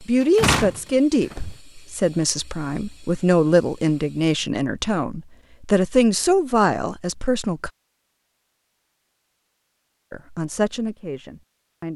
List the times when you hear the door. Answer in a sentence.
The door can be heard from 0.2 to 1.6 s.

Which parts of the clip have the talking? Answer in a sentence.
You can hear the talking from 0.0 to 7.7 s and from 10.1 to 11.9 s.